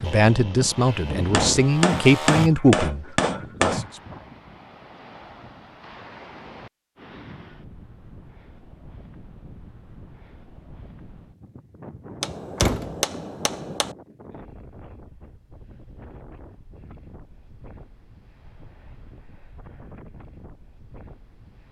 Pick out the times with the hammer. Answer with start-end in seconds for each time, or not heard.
1.3-3.9, 12.2-13.9.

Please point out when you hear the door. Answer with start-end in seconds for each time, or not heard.
12.6-13.0.